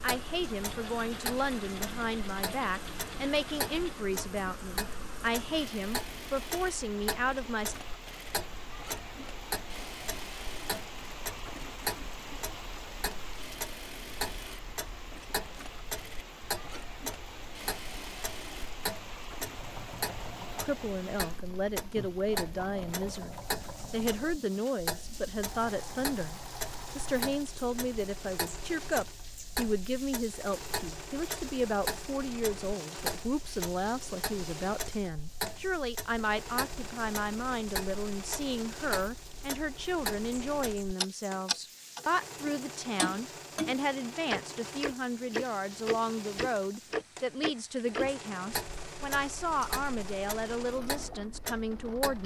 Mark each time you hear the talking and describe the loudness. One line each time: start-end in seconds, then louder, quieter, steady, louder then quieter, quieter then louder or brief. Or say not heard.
0.0-7.8 steady
20.6-52.2 steady.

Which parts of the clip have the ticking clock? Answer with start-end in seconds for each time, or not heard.
0.0-52.2.